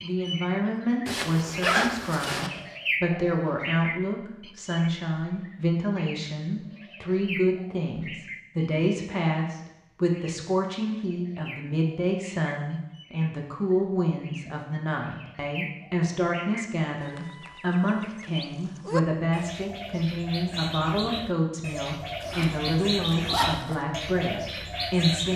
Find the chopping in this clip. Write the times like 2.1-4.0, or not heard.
not heard.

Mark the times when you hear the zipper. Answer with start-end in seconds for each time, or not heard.
1.1-2.5, 22.2-23.8.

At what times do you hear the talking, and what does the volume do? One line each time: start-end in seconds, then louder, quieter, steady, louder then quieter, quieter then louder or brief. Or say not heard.
0.0-25.3 steady.